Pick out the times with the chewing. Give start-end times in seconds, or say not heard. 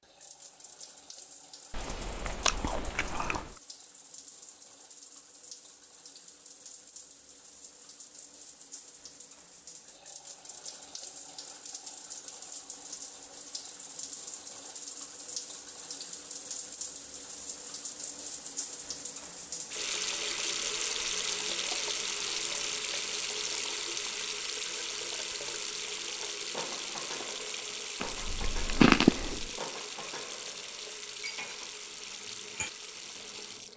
1.7-3.5, 28.0-29.5.